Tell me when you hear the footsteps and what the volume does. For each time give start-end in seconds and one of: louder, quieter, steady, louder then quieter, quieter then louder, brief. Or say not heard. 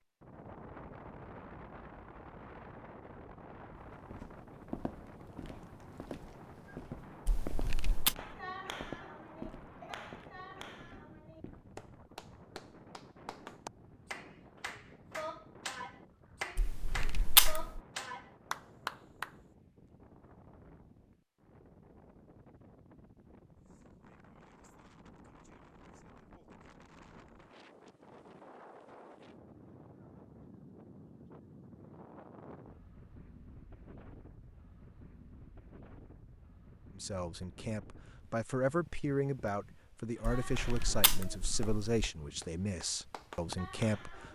3.8-11.8 quieter.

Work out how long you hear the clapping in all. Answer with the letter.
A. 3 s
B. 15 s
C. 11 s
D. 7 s
B.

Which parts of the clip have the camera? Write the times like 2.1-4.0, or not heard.
7.2-8.2, 16.6-17.8, 40.4-42.0.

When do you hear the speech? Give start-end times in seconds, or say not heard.
37.0-44.2.